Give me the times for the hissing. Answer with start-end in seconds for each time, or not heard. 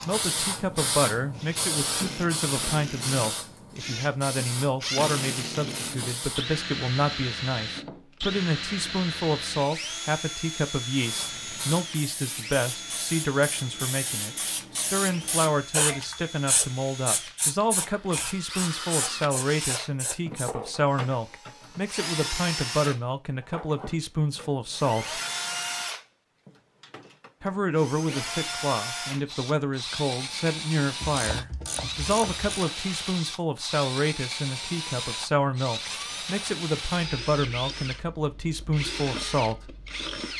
0.0-6.5, 10.9-20.6.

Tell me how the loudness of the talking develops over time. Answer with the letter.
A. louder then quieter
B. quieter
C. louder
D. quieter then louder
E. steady
E.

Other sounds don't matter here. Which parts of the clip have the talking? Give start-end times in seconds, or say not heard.
0.1-25.2, 27.4-39.7.